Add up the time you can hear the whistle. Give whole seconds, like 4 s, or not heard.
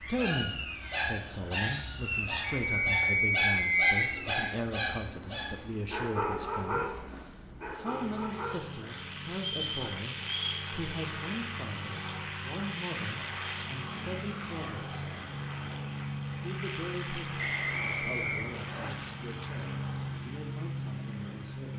4 s.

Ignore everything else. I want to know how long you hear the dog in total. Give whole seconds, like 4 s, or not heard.
9 s.